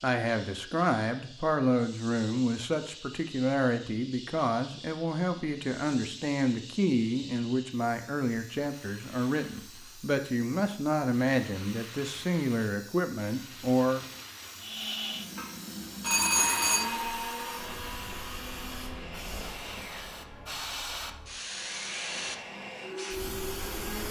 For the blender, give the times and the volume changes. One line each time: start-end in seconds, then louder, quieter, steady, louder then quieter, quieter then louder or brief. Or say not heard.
14.6-24.0 quieter then louder.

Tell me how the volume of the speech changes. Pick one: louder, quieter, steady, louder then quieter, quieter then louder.
steady.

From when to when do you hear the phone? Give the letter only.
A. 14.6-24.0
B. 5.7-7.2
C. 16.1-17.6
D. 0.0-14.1
C.